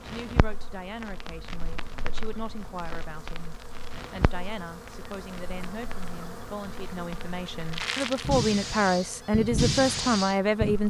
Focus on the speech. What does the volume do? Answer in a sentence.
The volume of the speech goes up.